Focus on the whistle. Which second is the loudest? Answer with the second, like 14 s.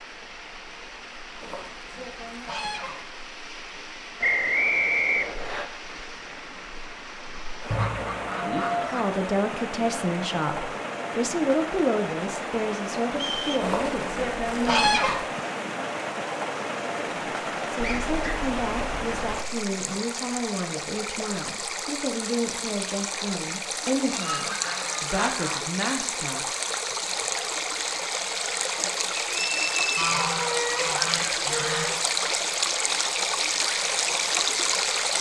5 s.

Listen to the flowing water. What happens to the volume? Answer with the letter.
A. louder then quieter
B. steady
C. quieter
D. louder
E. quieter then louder
D.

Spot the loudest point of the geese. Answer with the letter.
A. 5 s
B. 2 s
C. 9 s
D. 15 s
D.